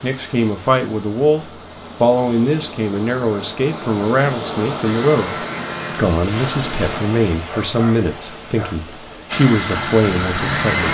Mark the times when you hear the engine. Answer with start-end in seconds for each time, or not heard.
4.8-7.0, 9.3-10.9.